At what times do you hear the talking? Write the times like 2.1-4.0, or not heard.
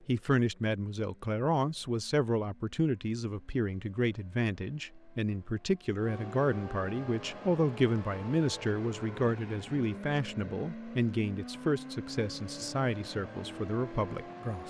0.1-14.6.